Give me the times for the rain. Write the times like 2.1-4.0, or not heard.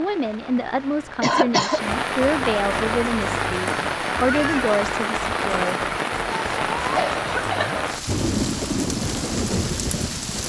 0.0-10.4.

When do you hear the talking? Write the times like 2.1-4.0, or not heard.
0.0-5.8.